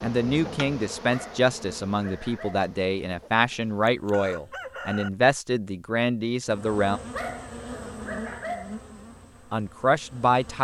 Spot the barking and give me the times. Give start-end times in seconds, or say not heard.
1.1-2.8, 7.1-8.8.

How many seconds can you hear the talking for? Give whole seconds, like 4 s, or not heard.
8 s.